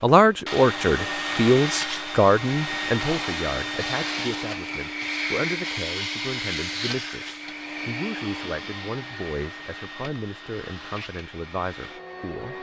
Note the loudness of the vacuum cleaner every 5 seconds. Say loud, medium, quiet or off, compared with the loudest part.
loud, loud, medium.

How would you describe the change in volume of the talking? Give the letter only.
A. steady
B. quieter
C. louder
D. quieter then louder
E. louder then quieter
B.